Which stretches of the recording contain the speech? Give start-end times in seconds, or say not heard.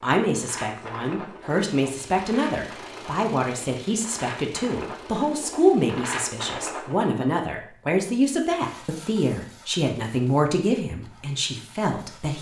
0.0-12.3.